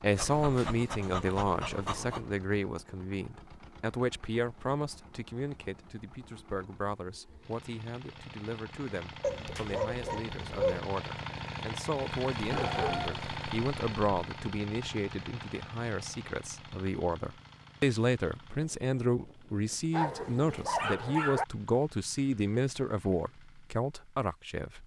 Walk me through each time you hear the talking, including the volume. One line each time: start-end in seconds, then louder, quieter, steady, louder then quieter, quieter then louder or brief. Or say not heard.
0.0-24.8 quieter then louder.